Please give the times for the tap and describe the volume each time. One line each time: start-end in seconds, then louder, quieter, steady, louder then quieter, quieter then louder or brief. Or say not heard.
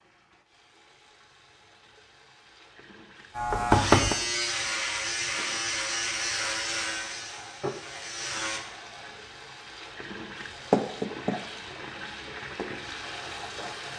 0.0-13.9 louder.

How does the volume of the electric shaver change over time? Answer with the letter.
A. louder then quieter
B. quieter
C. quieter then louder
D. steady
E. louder
B.